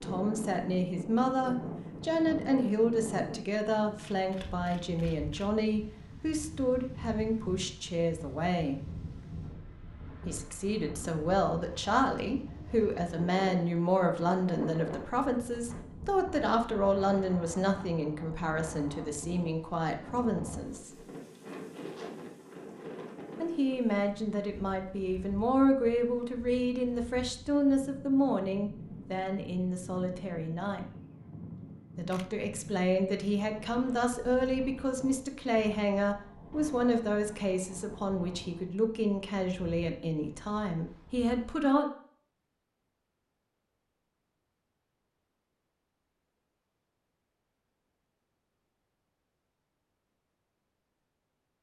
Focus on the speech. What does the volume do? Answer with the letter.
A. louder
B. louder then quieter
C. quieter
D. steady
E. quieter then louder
D.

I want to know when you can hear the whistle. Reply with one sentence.
The whistle can't be heard in this clip.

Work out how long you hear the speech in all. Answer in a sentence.
You can hear the speech for 37 seconds altogether.